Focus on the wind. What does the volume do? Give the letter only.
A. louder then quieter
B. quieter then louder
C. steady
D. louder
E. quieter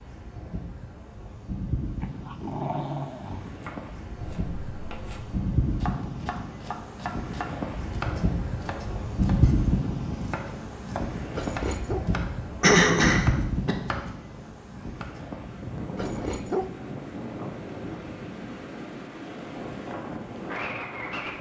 A.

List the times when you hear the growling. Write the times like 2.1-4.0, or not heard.
2.0-3.6, 11.3-12.1, 15.9-16.8.